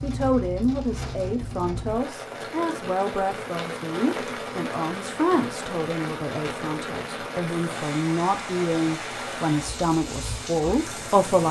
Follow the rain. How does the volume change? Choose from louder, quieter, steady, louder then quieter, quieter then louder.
steady.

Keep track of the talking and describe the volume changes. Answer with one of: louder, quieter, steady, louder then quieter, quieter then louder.
steady.